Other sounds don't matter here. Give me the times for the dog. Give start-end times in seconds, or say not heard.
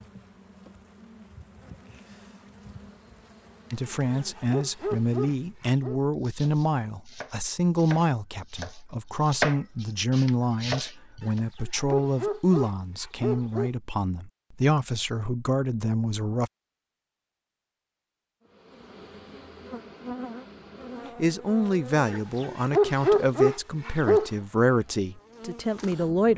3.9-6.0, 11.2-13.7, 22.1-24.3.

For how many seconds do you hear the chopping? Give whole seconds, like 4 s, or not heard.
5 s.